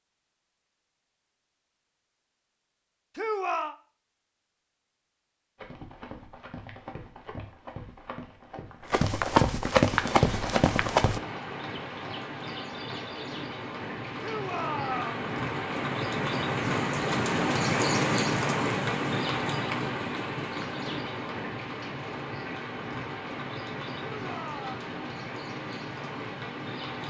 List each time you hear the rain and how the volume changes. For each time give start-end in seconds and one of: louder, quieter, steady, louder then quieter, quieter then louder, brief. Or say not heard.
9.8-27.0 louder then quieter.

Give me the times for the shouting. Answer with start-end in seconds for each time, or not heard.
3.1-3.8, 14.2-15.2, 24.1-24.8.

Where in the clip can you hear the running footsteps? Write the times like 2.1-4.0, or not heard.
5.5-11.2.